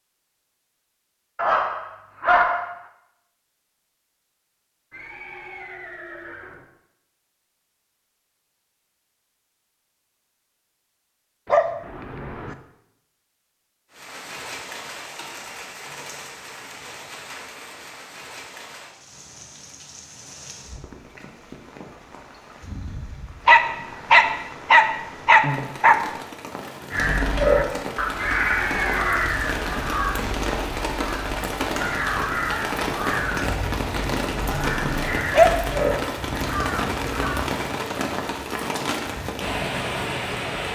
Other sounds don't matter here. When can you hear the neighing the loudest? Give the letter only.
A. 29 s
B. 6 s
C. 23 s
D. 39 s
A.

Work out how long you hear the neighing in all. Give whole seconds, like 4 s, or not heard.
3 s.